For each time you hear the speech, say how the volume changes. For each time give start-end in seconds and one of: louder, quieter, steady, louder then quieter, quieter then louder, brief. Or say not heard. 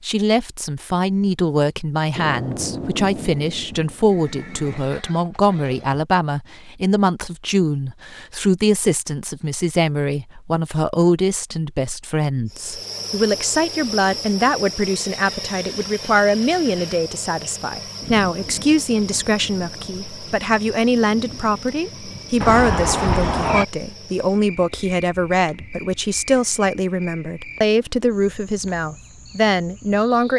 0.0-30.3 steady.